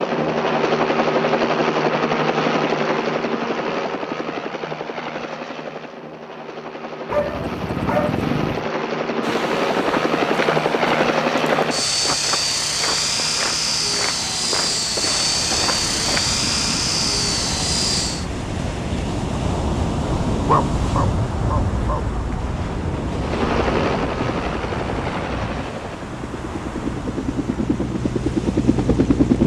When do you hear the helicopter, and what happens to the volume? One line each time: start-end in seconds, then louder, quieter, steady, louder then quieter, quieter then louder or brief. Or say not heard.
0.0-18.2 quieter then louder
23.2-29.4 quieter then louder.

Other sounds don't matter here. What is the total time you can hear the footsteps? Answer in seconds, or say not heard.
7 s.